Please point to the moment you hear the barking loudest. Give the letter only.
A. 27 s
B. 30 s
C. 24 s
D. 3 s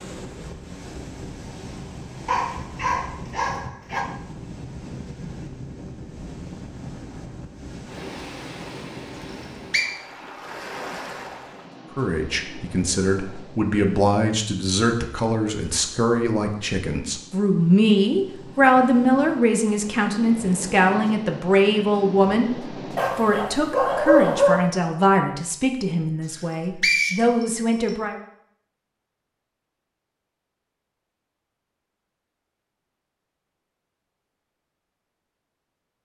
C.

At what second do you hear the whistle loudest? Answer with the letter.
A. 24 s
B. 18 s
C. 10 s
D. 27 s
D.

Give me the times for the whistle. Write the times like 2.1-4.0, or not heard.
9.2-9.8, 26.3-27.9.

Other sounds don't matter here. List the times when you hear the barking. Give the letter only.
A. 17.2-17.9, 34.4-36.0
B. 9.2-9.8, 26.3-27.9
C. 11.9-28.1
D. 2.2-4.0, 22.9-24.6
D.